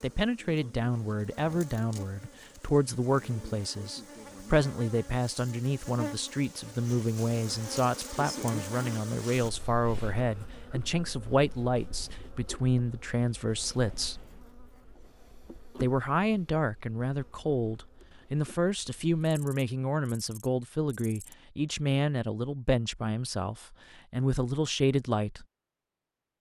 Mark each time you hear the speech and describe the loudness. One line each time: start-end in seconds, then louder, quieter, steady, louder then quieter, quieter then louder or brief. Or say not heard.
0.0-14.2 steady
15.8-25.4 steady.